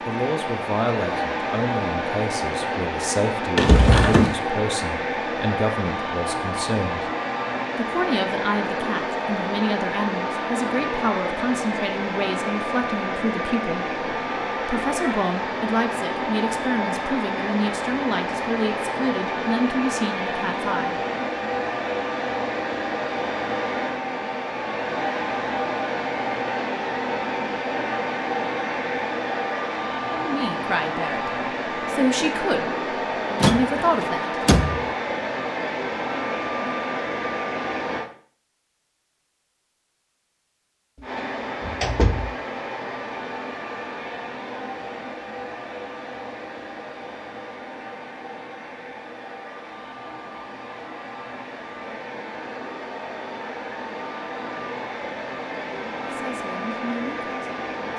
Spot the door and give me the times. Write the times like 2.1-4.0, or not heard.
3.5-4.4, 33.4-34.9, 41.0-42.4.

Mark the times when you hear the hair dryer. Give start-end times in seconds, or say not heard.
0.0-38.1, 41.0-57.9.